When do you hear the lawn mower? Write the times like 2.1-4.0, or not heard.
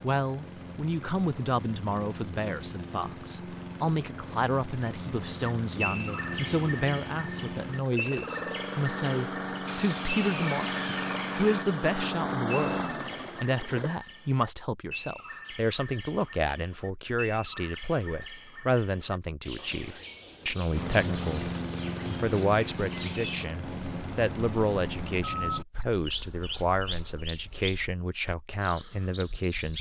0.0-13.9, 20.7-25.2.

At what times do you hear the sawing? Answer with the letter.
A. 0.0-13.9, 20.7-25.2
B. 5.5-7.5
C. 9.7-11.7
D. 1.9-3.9
C.